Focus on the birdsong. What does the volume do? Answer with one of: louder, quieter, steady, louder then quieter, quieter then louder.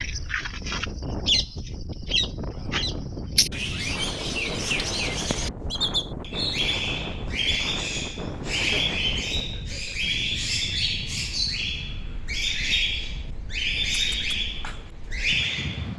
steady.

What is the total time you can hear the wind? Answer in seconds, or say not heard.
16 s.